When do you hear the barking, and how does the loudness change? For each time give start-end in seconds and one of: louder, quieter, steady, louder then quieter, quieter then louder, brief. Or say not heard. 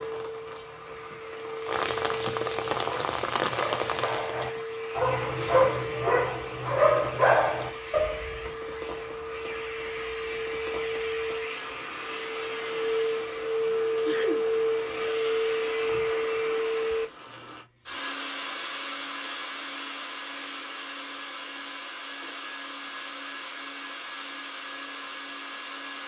2.8-8.5 louder.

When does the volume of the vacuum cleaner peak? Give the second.
14 s.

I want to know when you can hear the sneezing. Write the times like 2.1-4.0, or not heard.
13.6-14.4.